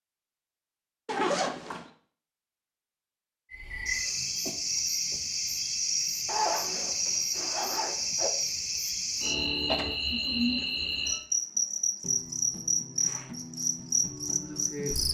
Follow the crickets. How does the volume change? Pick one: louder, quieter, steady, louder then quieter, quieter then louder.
steady.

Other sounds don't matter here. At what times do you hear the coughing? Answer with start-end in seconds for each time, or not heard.
not heard.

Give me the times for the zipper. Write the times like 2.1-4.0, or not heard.
1.1-1.9, 6.2-8.3, 12.9-13.3.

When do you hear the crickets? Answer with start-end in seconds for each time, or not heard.
3.5-15.0.